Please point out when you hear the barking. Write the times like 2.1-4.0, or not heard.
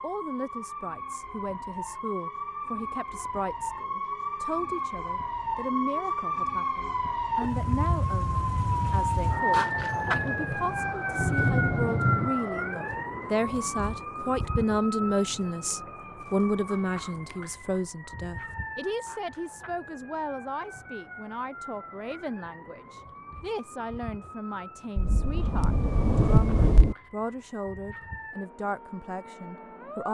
not heard.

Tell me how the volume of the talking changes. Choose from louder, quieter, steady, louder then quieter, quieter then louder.
louder then quieter.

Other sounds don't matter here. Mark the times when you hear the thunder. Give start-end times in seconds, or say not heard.
7.5-12.3, 24.9-26.9.